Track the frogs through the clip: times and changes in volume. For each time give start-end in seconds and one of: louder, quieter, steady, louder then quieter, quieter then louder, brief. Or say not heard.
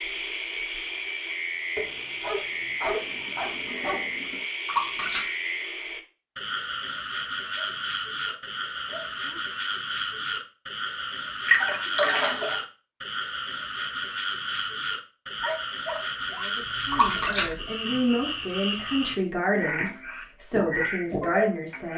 0.0-21.9 steady.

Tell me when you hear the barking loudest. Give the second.
3 s.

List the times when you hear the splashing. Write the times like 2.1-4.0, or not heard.
4.7-5.3, 11.4-12.6, 16.9-17.6.